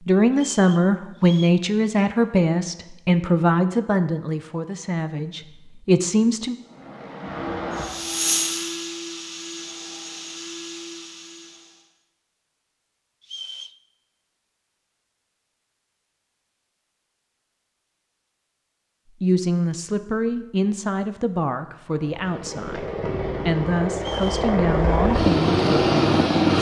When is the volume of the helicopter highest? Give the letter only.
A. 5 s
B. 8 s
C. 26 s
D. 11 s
C.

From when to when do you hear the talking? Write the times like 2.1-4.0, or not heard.
0.1-6.5, 19.2-26.4.